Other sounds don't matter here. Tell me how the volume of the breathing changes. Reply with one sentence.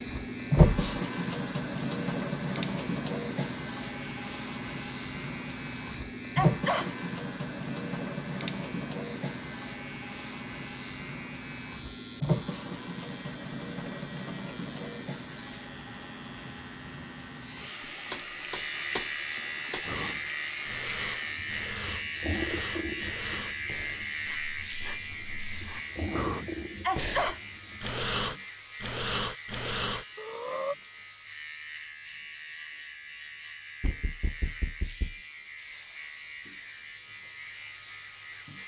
The volume of the breathing goes up.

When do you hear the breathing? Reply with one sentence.
You can hear the breathing from 19.8 to 30.8 s.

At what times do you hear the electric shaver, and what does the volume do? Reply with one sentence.
You can hear the electric shaver from 0.0 to 38.6 s, getting louder then quieter.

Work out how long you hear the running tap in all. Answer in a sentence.
You can hear the running tap for 28 seconds altogether.